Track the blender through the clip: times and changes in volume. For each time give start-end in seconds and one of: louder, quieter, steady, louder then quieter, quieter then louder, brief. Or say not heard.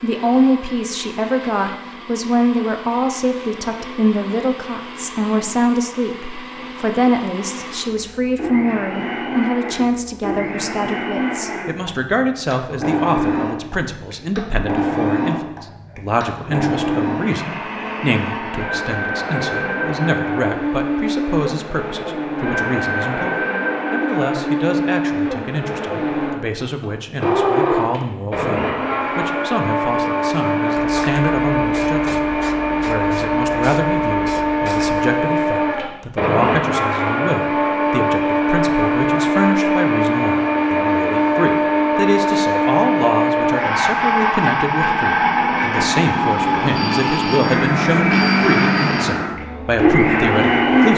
0.0-50.9 louder.